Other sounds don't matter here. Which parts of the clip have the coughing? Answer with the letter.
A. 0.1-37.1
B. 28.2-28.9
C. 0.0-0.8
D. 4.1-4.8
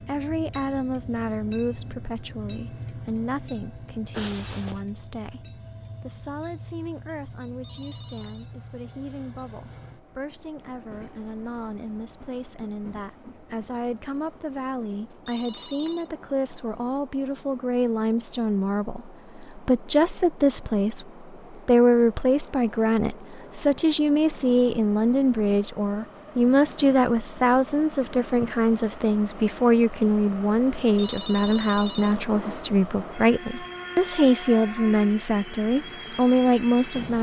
D.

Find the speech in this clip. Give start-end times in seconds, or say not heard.
0.1-37.1.